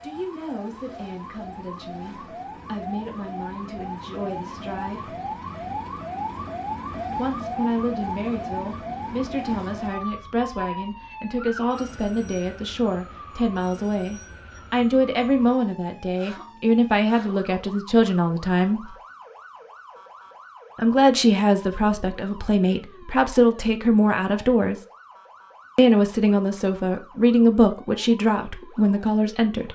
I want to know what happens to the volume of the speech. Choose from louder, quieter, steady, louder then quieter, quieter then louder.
louder.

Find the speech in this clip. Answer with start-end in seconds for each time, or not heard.
0.0-5.2, 7.2-18.9, 20.8-24.8, 25.8-29.7.